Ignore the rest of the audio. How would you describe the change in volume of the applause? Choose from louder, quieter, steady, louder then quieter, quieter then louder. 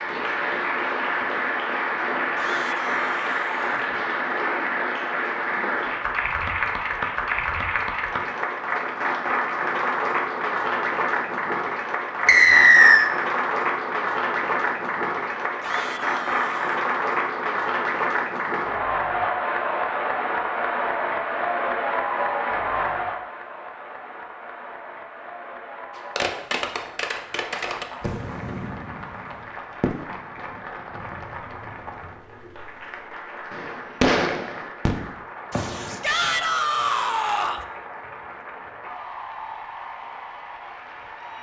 quieter.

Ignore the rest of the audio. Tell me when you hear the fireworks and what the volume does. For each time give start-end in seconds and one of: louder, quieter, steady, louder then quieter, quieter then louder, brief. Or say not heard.
25.9-32.6 quieter
33.5-36.0 brief.